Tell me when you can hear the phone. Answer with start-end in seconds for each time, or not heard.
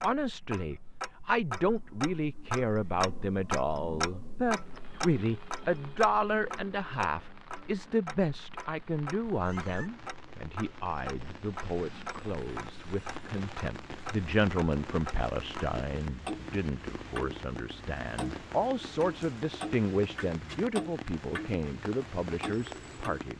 not heard.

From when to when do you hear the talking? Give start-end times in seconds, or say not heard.
0.0-23.3.